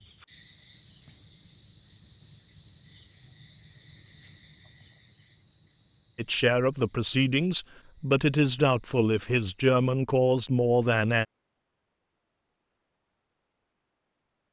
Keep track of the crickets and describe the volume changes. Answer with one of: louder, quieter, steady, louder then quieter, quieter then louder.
quieter.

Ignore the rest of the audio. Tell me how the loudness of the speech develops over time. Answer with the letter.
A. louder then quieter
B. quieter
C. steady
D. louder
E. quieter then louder
C.